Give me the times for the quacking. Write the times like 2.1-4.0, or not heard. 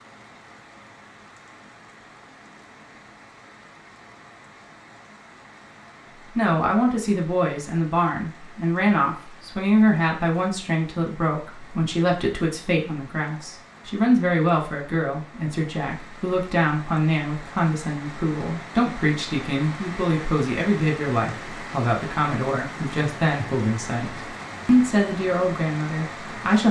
not heard.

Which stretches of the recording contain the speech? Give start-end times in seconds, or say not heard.
6.3-26.6.